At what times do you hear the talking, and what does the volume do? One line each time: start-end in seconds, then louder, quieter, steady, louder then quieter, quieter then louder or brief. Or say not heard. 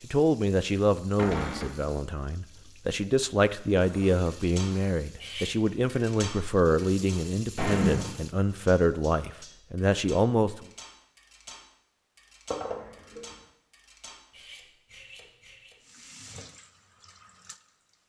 0.0-10.7 steady.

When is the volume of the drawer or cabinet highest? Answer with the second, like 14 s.
8 s.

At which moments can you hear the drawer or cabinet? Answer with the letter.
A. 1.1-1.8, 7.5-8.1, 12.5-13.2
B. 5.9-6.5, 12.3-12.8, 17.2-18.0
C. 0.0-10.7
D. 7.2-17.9
A.